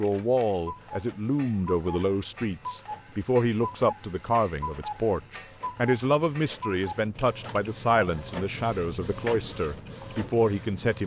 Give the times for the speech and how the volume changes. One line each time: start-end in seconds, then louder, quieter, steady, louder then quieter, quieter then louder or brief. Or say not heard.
0.0-11.0 steady.